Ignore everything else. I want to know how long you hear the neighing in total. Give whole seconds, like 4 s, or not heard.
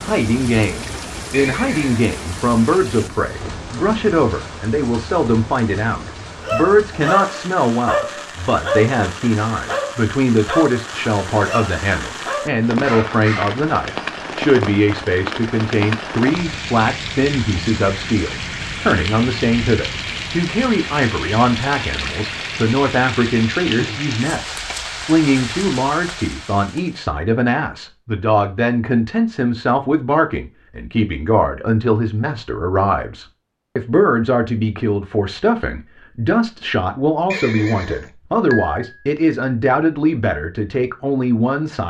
2 s.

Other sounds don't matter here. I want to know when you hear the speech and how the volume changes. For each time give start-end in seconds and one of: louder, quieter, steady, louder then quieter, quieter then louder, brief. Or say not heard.
0.0-41.8 steady.